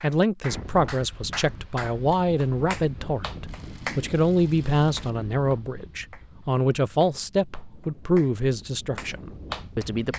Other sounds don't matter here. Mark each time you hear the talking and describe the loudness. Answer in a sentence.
You can hear the talking from 0.0 to 10.1 s, at a steady volume.